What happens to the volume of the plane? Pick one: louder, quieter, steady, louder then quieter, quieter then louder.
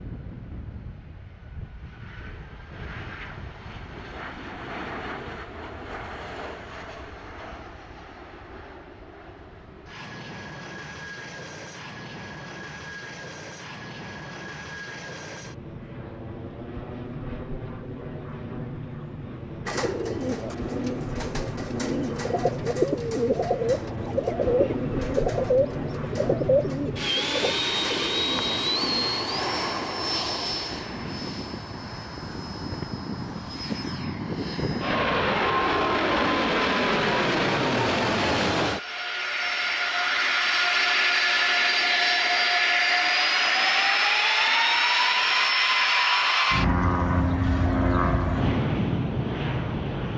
louder.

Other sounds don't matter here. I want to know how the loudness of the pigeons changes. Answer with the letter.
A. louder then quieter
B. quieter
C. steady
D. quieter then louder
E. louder
A.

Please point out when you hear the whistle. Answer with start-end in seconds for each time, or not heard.
not heard.